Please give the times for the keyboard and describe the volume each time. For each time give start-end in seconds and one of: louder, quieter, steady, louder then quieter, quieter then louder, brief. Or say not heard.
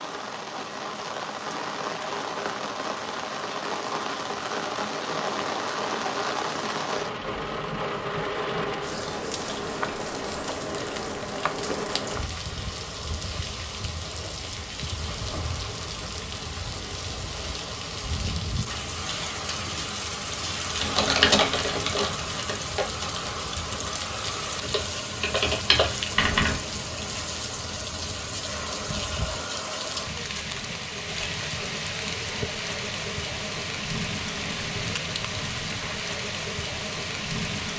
20.8-26.6 quieter then louder.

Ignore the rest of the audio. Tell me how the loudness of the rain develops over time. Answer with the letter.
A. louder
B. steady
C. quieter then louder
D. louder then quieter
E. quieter
B.